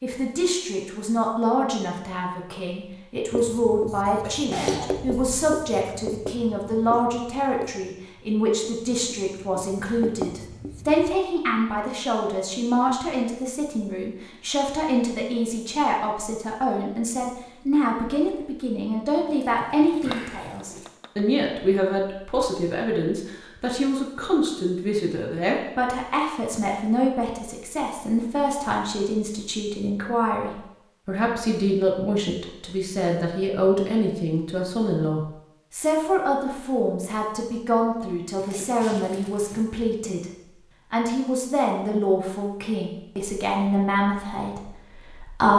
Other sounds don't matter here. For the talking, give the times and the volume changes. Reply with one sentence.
The talking can be heard from 0.0 to 45.5 s, at a steady volume.